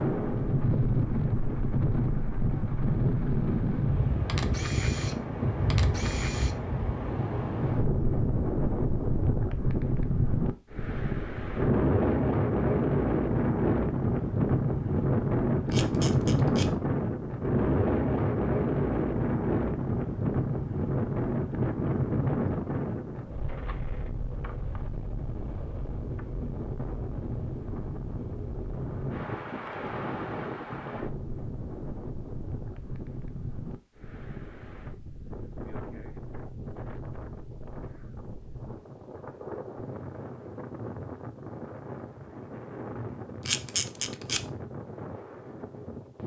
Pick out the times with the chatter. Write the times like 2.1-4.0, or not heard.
not heard.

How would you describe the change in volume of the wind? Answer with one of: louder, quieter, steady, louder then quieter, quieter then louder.
quieter.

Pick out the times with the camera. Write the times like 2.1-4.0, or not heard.
4.2-6.5, 15.7-16.7, 43.5-44.4.